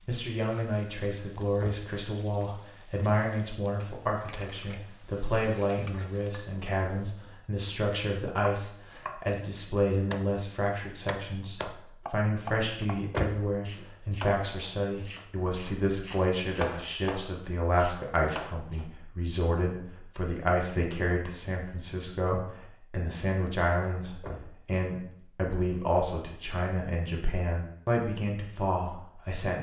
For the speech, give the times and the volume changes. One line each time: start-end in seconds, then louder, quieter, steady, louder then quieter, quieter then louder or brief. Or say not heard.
0.1-29.5 steady.